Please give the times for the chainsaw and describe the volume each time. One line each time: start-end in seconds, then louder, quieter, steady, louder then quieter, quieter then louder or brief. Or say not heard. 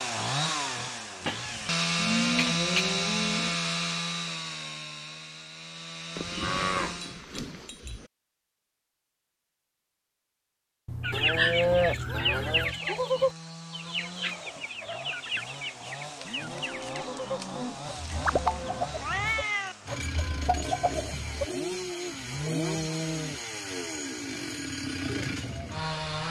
0.0-7.2 louder then quieter
12.5-26.2 louder.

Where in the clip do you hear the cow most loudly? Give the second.
12 s.